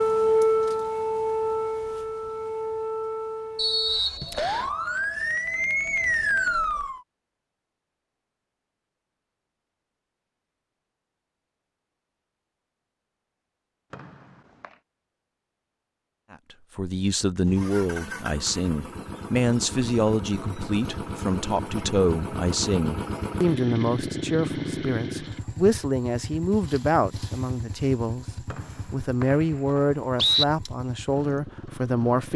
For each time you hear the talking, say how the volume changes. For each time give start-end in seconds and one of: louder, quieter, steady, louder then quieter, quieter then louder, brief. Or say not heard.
16.3-32.3 steady.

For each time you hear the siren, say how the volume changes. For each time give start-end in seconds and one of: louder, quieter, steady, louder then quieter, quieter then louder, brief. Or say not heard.
0.0-7.0 quieter then louder.